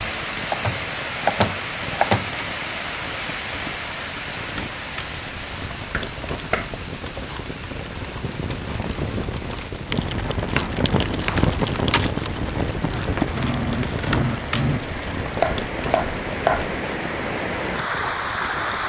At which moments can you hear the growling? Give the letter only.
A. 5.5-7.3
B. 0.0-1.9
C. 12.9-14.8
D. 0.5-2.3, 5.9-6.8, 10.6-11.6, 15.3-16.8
C.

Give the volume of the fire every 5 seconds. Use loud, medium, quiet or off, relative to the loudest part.
quiet, medium, loud, medium.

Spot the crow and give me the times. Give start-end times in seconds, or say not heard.
not heard.